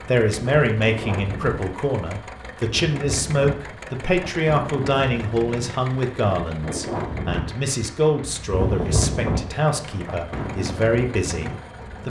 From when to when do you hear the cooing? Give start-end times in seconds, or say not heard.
not heard.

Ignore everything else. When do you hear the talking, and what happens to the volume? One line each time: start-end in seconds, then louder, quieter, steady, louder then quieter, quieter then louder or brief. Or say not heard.
0.1-12.0 steady.